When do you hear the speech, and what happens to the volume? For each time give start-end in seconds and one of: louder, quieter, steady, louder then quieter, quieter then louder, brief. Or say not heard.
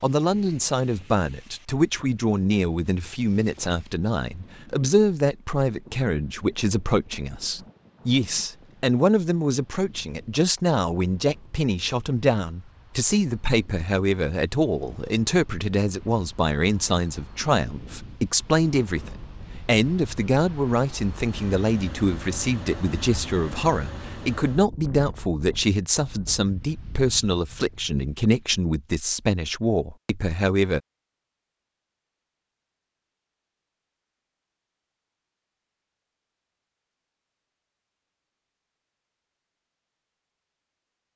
0.0-30.8 steady.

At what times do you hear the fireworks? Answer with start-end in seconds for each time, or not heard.
not heard.